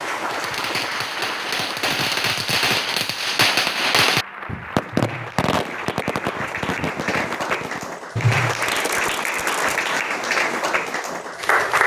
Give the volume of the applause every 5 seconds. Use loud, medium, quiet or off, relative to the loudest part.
medium, loud, loud.